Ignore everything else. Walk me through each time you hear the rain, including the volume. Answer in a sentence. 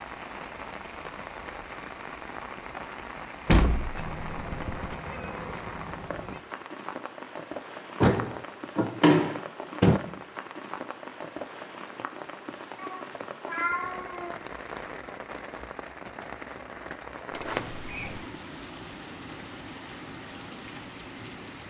You can hear the rain from 0.0 to 21.6 s, at a steady volume.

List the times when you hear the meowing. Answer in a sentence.
The meowing can be heard from 4.0 to 6.4 s and from 12.8 to 14.4 s.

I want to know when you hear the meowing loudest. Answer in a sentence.
The loudest moment of the meowing is at 14 seconds.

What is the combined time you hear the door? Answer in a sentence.
The door can be heard for 4 seconds in total.